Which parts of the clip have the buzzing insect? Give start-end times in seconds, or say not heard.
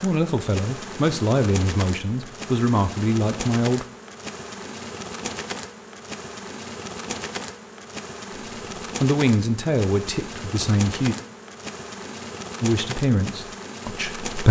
0.0-14.4.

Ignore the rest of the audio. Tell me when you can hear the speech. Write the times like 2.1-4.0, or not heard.
0.0-3.9, 9.0-11.2, 12.6-14.4.